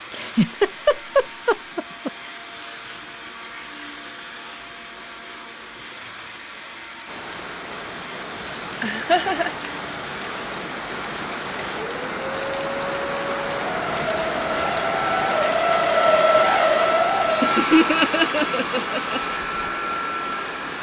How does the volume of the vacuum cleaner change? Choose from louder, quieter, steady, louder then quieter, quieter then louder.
louder.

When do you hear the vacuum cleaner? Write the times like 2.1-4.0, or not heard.
0.0-20.7.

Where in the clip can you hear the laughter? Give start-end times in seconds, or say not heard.
0.1-2.1, 8.8-9.6, 17.2-19.2.